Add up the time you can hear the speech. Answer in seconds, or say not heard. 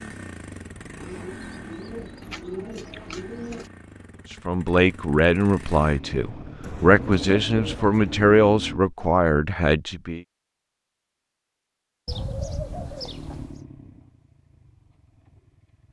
6 s.